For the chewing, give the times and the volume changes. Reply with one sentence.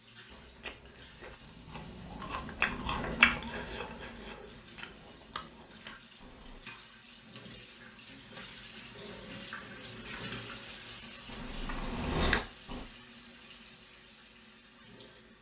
You can hear the chewing from 0.3 to 6.6 s, getting louder then quieter; and briefly from 11.2 to 12.8 s.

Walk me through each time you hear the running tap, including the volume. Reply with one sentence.
You can hear the running tap from 0.0 to 15.3 s, getting louder then quieter.